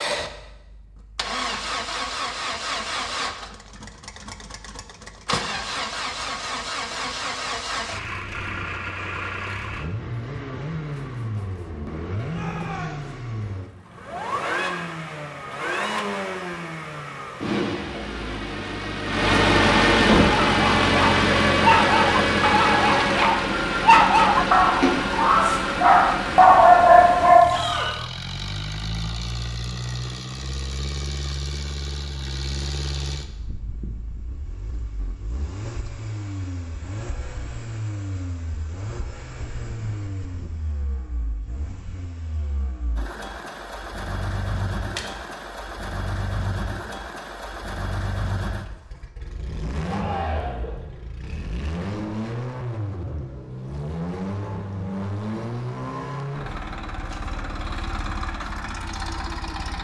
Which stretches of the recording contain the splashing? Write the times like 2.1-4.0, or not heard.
24.8-25.2.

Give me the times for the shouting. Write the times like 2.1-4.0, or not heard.
12.3-13.1, 27.4-27.9, 49.8-50.8.